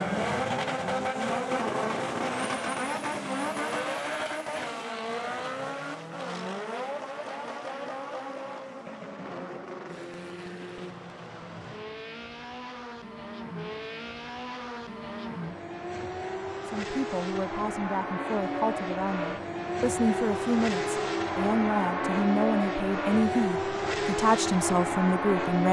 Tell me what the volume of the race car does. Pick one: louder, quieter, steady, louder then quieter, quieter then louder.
quieter then louder.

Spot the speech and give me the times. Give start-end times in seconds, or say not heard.
16.6-25.6.